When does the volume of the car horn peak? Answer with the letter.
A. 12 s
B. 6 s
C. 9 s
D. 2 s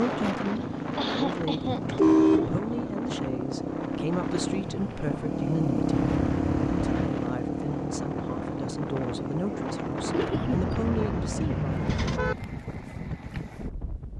D.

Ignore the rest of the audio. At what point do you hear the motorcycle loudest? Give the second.
6 s.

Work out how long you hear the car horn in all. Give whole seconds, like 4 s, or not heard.
4 s.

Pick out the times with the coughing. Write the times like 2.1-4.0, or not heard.
0.4-2.0, 10.1-10.7.